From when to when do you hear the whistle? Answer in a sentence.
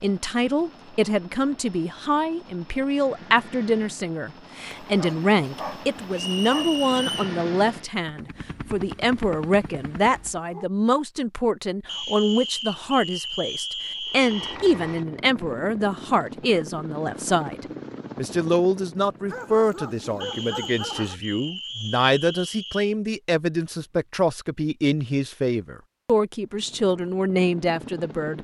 You can hear the whistle from 6.1 to 7.3 s, from 11.8 to 14.6 s and from 20.2 to 22.9 s.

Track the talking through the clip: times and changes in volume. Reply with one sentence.
The talking can be heard from 0.0 to 28.3 s, at a steady volume.